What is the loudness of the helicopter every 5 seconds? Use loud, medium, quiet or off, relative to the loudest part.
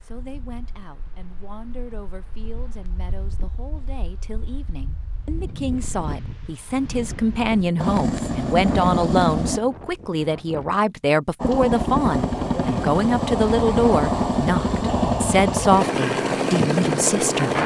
off, loud, loud, loud.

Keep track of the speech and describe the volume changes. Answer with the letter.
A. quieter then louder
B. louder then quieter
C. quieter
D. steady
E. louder
E.